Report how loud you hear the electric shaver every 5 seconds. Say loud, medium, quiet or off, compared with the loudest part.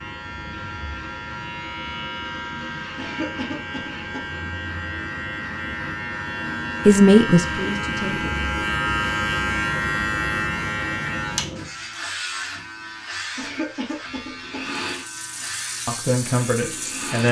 medium, loud, loud, medium.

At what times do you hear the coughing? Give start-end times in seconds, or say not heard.
3.0-4.2, 13.3-14.7.